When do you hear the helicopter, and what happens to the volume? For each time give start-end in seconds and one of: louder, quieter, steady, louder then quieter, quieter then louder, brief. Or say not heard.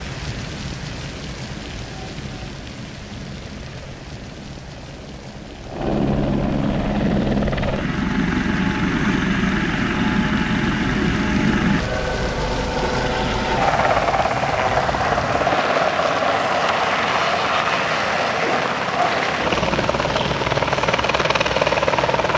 0.0-22.3 louder.